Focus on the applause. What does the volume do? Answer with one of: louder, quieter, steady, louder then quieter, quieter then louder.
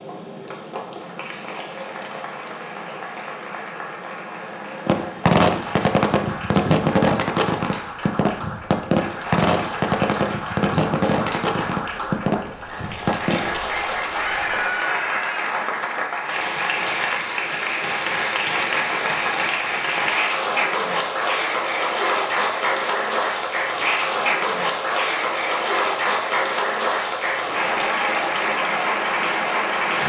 louder.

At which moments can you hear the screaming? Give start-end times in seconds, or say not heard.
14.1-15.5.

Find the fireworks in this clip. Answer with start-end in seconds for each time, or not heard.
4.8-13.5.